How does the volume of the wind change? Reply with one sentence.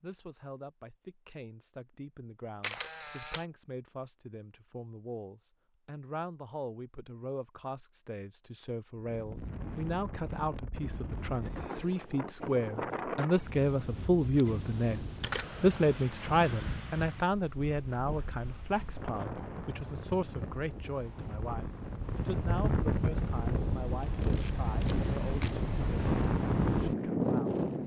The volume of the wind goes up.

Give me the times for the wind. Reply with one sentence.
The wind can be heard from 9.1 to 27.8 s.